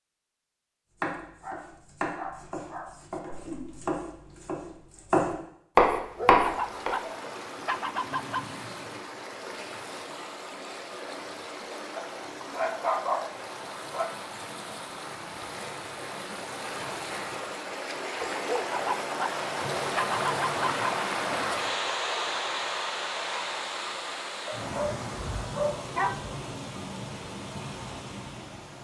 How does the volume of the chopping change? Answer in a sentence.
The loudness of the chopping goes down, then up.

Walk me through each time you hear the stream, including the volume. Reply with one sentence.
The stream can be heard from 6.0 to 28.7 s, getting louder then quieter.